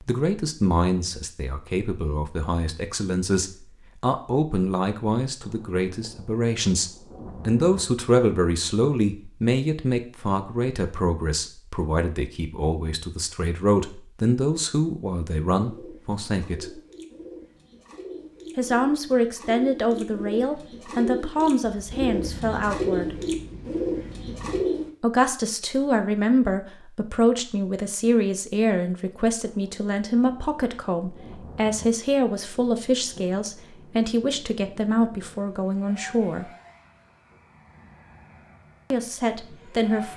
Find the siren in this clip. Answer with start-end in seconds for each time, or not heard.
not heard.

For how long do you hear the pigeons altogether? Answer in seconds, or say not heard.
9 s.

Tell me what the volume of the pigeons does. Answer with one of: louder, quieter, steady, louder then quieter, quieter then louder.
louder.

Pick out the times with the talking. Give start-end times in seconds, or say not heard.
0.0-16.8, 18.6-23.1, 25.0-36.5, 38.9-40.1.